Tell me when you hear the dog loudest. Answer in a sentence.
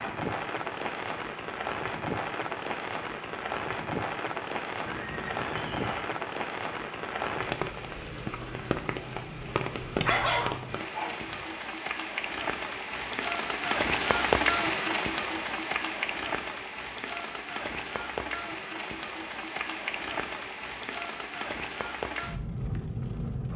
The loudest moment of the dog is at 10 seconds.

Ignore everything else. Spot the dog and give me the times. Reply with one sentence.
The dog can be heard from 10.0 to 11.4 s.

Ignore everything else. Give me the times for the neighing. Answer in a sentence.
You can hear the neighing from 4.8 to 6.1 s.